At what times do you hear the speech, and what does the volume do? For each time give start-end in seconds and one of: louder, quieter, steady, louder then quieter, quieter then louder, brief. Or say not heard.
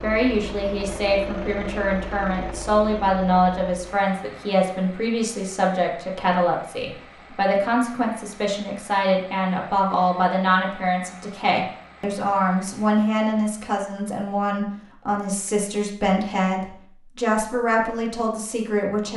0.0-19.1 steady.